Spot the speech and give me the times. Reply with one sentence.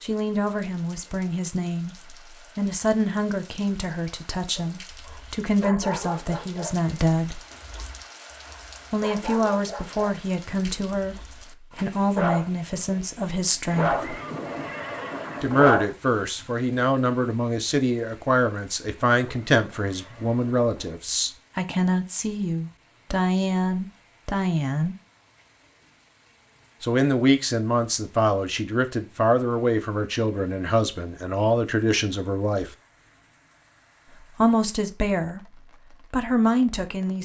You can hear the speech from 0.0 to 7.4 s, from 8.9 to 14.1 s, from 15.4 to 24.9 s, from 26.8 to 32.7 s, from 34.4 to 35.4 s and from 36.1 to 37.1 s.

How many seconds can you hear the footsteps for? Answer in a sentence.
The footsteps can't be heard in this clip.